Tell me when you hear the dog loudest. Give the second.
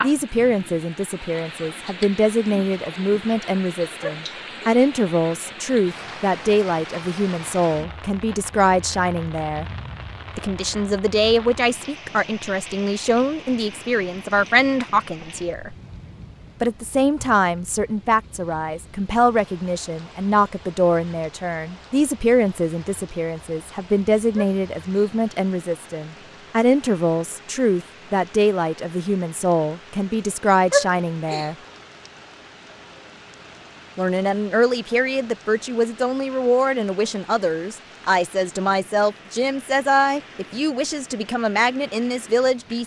31 s.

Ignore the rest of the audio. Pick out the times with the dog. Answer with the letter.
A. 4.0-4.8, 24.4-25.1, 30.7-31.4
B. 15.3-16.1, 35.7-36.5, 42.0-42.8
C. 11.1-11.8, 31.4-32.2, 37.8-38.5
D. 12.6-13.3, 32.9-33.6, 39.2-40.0
A.